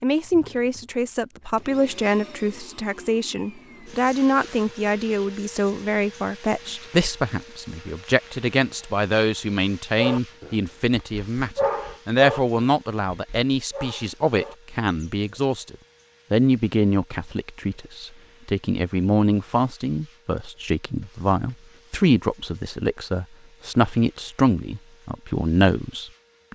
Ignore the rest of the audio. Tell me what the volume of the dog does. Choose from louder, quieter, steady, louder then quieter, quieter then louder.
louder then quieter.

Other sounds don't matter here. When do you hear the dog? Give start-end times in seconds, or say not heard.
9.9-15.4.